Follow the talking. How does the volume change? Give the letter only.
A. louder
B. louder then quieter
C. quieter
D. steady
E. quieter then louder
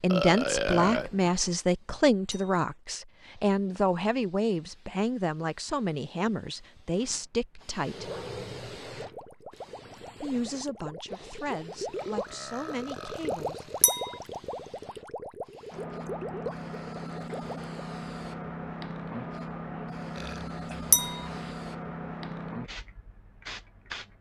C.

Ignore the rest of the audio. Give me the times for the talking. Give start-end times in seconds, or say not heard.
0.0-8.1, 10.2-13.7.